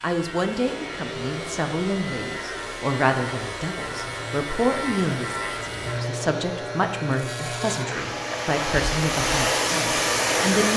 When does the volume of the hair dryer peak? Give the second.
10 s.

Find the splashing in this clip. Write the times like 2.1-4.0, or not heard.
not heard.